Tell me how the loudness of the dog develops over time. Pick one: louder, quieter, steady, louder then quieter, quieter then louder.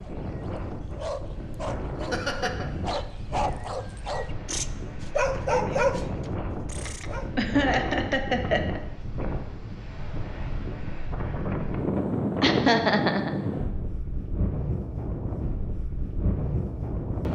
louder.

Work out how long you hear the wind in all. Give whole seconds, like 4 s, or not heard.
17 s.